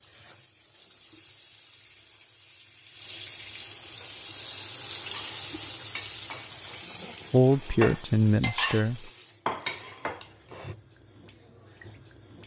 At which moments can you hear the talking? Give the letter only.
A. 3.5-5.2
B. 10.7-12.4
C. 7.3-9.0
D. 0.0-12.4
C.